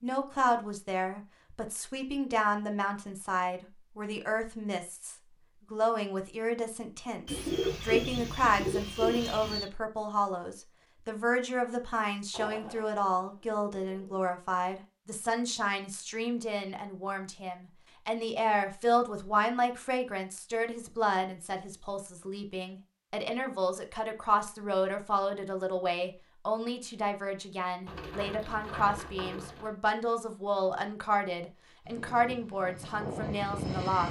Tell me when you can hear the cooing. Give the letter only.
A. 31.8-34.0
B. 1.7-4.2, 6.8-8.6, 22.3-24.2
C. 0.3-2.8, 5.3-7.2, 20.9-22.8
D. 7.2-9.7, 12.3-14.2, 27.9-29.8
D.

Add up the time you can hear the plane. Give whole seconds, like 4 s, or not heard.
2 s.